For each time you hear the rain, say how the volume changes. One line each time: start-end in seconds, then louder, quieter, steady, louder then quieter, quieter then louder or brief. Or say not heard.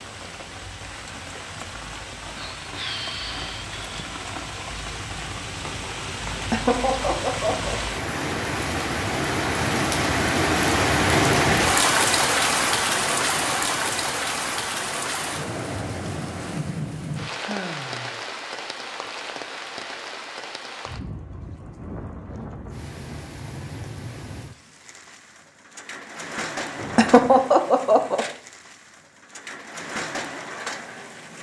0.0-31.3 louder then quieter.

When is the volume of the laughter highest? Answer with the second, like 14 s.
27 s.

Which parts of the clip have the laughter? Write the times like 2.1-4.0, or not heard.
6.5-7.8, 26.9-28.2.